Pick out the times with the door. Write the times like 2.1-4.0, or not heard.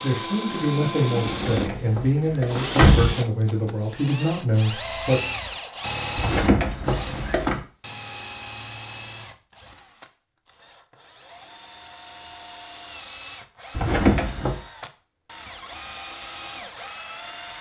1.2-3.1, 6.2-7.6, 13.8-14.6.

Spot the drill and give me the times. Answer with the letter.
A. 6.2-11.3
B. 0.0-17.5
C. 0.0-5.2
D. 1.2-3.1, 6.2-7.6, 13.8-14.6
B.